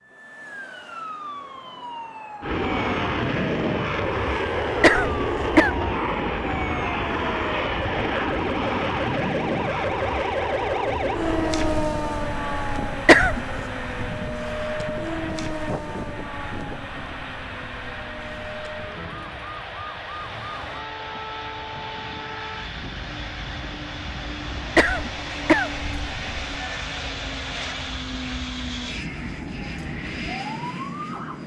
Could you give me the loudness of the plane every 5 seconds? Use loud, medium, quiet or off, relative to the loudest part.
loud, loud, medium, medium, medium, medium, medium.